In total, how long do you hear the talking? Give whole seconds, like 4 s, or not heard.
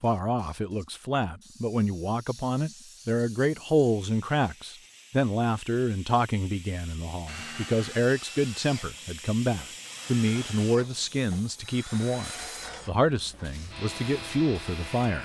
15 s.